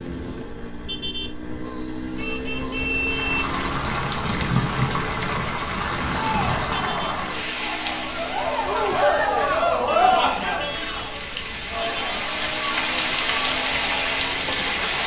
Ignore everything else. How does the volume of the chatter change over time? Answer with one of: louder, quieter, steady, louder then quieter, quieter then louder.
louder then quieter.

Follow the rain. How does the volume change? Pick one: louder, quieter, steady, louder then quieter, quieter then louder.
quieter then louder.